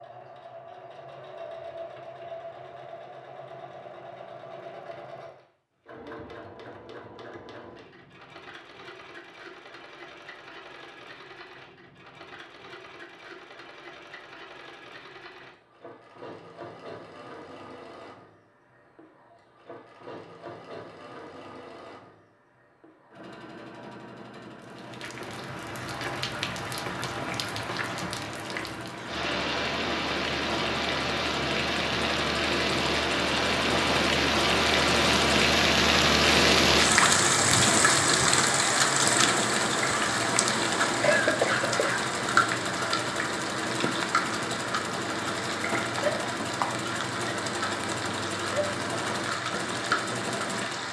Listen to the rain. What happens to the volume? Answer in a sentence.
The loudness of the rain goes up, then down.